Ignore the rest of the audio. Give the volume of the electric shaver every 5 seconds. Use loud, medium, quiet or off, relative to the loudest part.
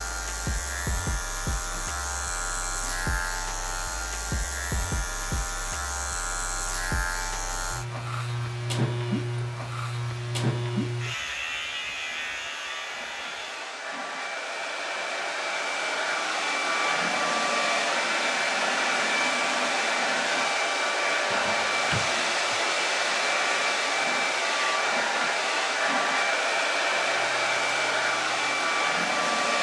loud, loud, loud, off, off, quiet.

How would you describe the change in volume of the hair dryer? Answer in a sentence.
The volume of the hair dryer goes up.